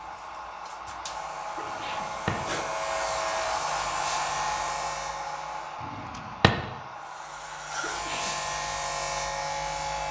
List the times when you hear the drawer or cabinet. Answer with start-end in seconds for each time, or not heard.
1.6-2.5, 5.8-6.7.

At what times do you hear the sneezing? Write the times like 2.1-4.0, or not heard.
1.6-2.0, 7.8-8.3.